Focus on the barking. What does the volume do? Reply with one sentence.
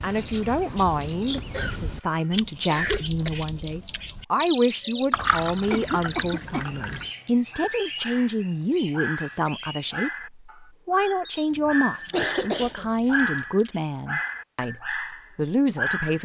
The volume of the barking goes up.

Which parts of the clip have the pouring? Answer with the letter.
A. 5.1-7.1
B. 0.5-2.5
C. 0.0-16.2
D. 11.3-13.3
A.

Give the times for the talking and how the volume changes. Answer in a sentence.
You can hear the talking from 0.0 to 16.2 s, at a steady volume.